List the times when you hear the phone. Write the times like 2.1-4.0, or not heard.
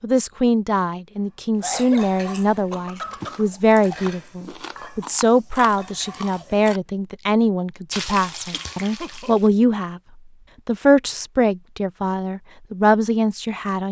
not heard.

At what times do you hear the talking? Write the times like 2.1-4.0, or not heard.
0.0-10.0, 10.7-13.8.